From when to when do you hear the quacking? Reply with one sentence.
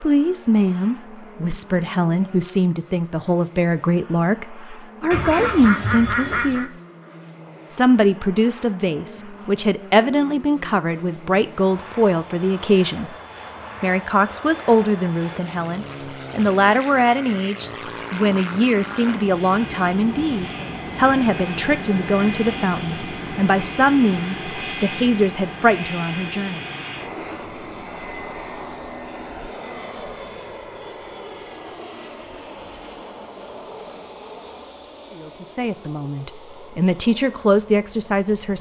The quacking can be heard from 5.1 to 6.7 s.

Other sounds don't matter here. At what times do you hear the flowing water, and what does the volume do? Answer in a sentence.
You can't hear the flowing water here.